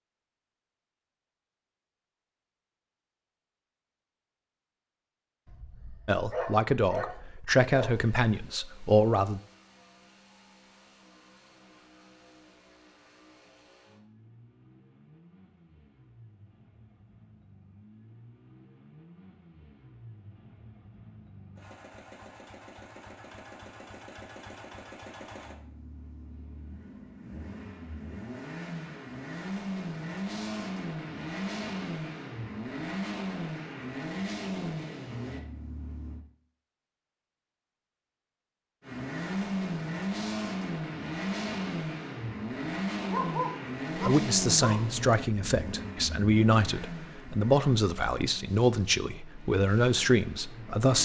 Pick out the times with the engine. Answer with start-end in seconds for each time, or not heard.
7.8-36.2, 38.8-50.9.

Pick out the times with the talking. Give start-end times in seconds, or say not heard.
6.0-9.4, 44.0-50.9.